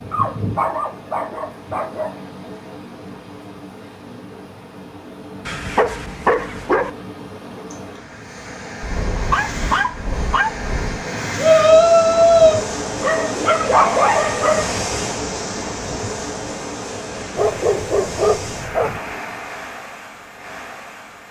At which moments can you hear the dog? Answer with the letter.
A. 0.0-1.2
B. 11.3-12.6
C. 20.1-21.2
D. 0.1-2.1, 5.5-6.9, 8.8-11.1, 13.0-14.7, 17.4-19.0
D.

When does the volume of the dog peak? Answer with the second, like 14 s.
14 s.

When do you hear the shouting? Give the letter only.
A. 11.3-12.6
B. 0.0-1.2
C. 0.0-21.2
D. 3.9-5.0
A.